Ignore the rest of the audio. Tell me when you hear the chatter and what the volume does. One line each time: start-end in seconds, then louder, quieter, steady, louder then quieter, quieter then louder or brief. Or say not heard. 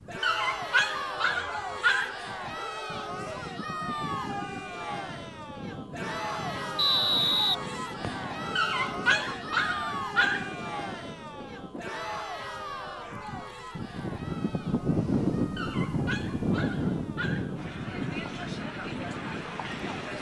0.1-20.1 quieter.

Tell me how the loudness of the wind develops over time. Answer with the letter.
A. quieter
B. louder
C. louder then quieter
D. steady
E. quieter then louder
B.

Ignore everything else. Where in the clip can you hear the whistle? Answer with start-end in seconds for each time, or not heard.
6.8-8.2.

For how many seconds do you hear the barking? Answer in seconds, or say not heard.
6 s.